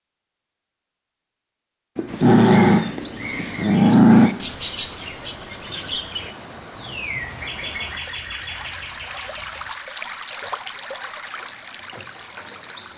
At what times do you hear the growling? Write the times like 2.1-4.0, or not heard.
1.9-4.3.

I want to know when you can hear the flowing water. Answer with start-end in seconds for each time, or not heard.
3.2-12.9.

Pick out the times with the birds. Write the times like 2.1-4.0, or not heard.
2.0-12.9.